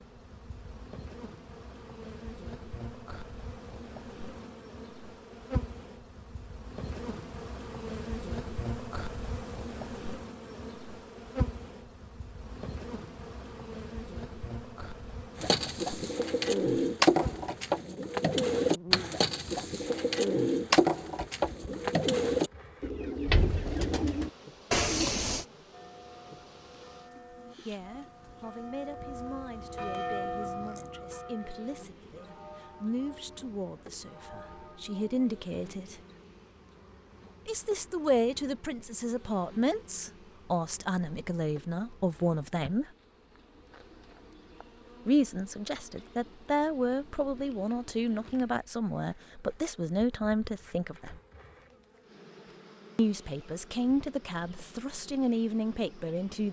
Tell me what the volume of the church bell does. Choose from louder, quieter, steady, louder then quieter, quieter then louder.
louder then quieter.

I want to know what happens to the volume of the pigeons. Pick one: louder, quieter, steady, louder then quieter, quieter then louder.
steady.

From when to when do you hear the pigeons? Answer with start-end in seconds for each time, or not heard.
15.3-25.4.